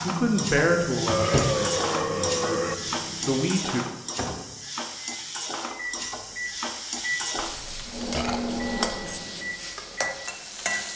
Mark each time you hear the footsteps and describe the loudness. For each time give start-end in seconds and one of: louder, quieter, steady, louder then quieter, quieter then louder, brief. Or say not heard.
not heard.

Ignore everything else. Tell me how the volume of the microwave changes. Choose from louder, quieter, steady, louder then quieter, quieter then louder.
quieter then louder.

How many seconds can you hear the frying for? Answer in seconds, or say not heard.
11 s.